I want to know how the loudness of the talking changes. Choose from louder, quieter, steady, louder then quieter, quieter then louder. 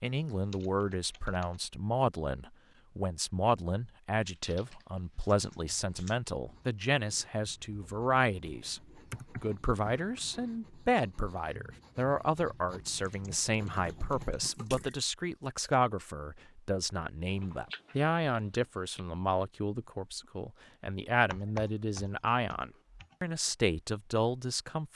steady.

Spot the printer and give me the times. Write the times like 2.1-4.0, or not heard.
not heard.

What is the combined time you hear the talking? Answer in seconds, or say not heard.
24 s.